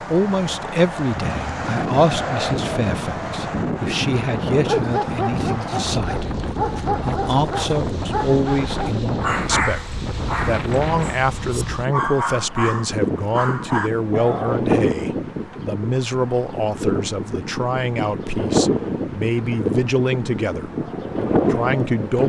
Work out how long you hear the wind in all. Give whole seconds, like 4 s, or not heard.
22 s.